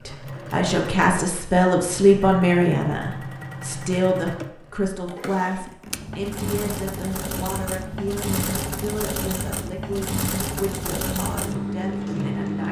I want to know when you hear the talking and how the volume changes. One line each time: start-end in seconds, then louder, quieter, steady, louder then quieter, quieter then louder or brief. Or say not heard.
0.1-12.6 quieter.